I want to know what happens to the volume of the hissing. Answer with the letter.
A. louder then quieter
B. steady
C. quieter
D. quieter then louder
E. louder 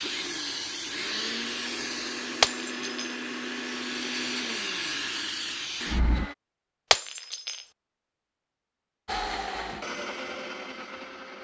D.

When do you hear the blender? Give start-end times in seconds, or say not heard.
0.0-6.3, 9.1-11.4.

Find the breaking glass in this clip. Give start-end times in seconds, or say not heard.
2.4-3.1, 6.9-7.6.